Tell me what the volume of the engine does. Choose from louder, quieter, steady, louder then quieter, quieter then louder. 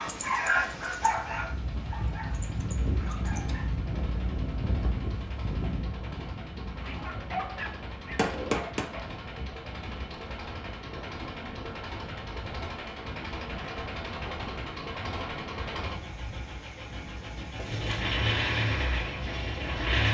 louder.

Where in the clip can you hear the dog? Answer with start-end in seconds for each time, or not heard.
0.0-3.8, 6.8-9.1.